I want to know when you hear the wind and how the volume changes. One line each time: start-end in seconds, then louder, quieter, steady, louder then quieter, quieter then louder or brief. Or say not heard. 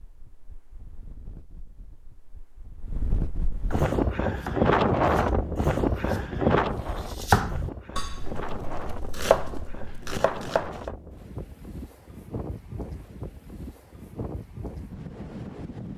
0.0-15.9 louder then quieter.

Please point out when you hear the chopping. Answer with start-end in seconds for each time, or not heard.
3.7-10.9.